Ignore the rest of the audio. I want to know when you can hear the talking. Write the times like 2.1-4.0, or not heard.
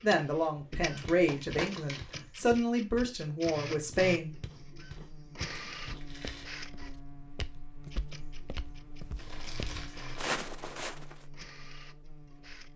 0.0-4.3.